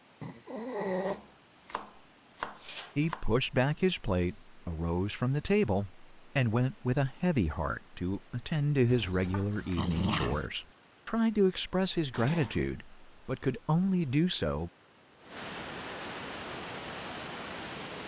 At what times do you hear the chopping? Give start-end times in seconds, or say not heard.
0.9-3.2.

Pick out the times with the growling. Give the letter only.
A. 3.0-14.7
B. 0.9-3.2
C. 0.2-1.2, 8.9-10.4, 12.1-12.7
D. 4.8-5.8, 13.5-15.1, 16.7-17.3
C.